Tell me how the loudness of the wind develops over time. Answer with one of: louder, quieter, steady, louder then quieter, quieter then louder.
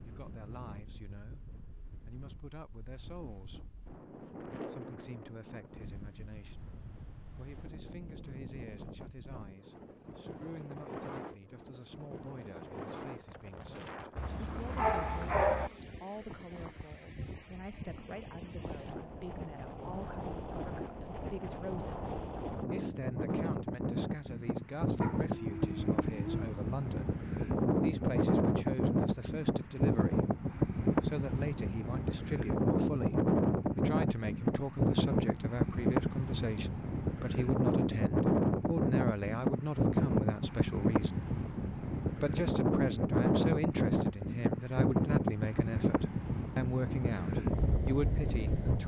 louder.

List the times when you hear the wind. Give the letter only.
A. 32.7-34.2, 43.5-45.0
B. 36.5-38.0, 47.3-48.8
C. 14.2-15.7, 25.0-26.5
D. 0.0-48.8
D.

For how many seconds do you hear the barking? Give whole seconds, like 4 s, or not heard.
3 s.